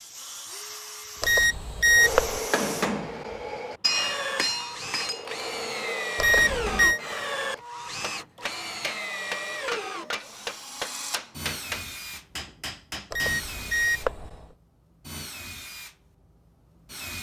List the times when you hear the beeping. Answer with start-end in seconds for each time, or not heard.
1.2-2.4, 6.2-7.0, 13.1-14.3.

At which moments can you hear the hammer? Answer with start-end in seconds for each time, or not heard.
1.9-13.4.